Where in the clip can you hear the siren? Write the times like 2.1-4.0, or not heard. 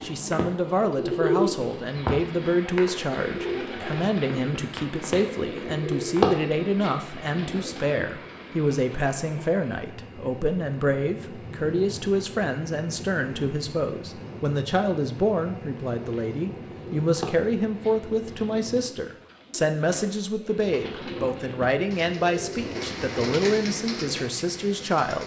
not heard.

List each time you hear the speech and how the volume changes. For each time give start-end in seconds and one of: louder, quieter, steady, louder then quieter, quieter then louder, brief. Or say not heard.
0.0-25.2 steady.